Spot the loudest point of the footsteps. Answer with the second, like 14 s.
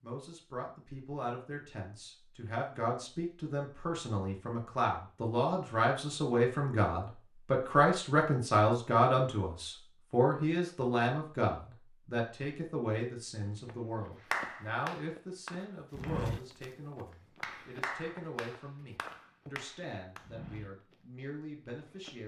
16 s.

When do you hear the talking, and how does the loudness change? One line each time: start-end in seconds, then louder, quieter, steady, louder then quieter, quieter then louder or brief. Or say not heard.
0.0-22.2 louder then quieter.